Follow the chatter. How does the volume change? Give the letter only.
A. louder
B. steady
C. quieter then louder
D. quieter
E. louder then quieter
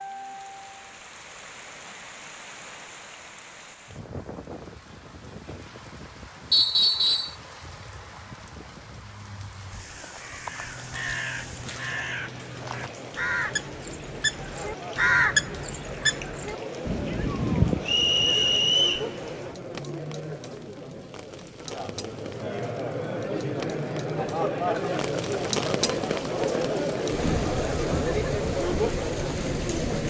A.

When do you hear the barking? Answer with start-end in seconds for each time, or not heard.
not heard.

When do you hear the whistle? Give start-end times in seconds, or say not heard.
6.5-7.3, 17.9-19.1.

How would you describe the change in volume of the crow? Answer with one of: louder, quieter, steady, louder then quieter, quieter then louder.
louder.